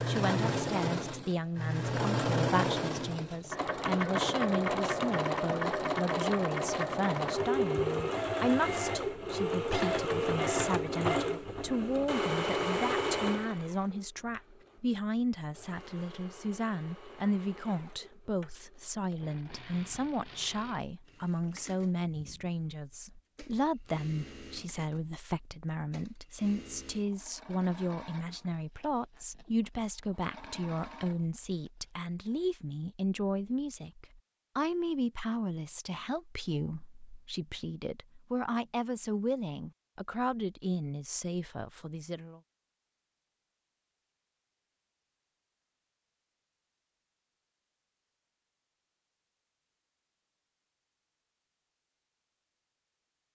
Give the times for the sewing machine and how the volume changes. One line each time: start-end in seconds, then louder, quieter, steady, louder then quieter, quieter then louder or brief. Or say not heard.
0.0-32.5 quieter.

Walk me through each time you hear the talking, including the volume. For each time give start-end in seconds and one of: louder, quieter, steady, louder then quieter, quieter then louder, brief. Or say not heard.
0.1-42.4 steady.